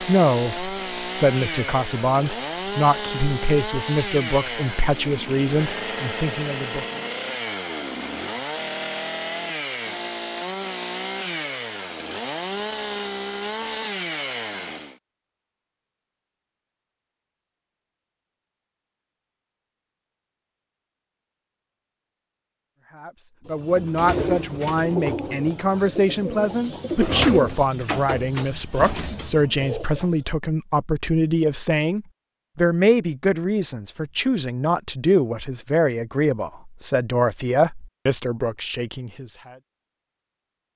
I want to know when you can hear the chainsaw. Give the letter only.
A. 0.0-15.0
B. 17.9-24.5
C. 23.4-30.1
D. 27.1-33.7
A.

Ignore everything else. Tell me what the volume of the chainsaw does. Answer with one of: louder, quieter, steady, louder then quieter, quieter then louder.
steady.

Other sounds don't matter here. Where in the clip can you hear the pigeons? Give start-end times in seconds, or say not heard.
23.4-30.1.